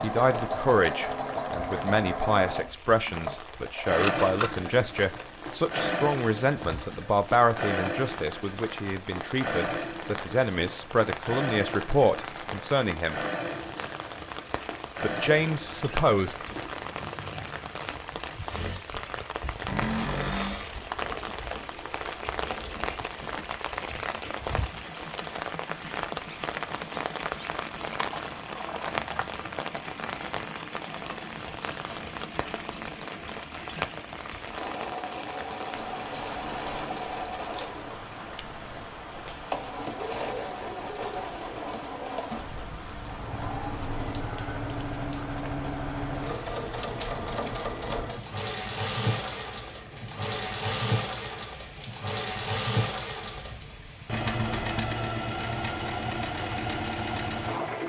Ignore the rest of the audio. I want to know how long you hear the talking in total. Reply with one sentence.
The talking can be heard for 15 seconds in total.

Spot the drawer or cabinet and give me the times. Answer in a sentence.
You can hear the drawer or cabinet from 19.6 to 20.8 s.